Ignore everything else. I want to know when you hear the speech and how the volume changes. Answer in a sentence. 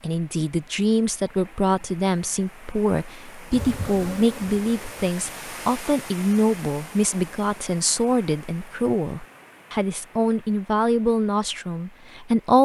You can hear the speech from 0.0 to 12.5 s, at a steady volume.